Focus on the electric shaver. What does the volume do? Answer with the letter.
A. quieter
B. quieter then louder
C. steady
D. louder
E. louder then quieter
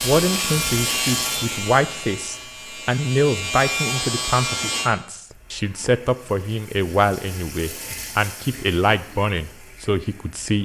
B.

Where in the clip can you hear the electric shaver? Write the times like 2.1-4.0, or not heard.
0.0-4.9.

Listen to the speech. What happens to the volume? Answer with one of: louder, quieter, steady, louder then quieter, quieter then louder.
steady.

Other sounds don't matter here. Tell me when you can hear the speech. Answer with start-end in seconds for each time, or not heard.
0.0-10.5.